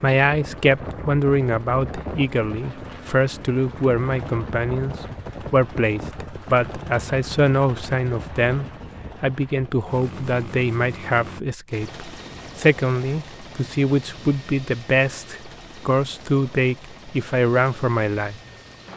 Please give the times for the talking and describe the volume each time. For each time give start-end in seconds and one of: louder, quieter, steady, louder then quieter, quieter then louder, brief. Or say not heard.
0.0-18.4 steady.